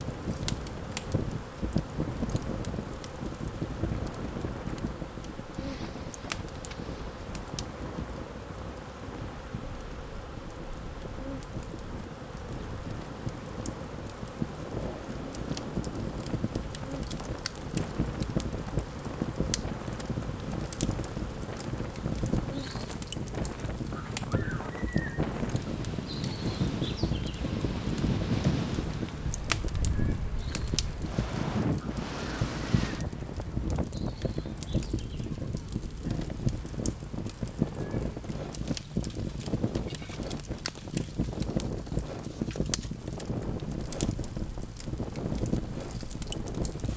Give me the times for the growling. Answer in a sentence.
The growling can't be heard in this clip.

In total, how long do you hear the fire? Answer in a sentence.
The fire can be heard for 47 seconds in total.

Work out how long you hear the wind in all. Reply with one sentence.
You can hear the wind for 47 seconds altogether.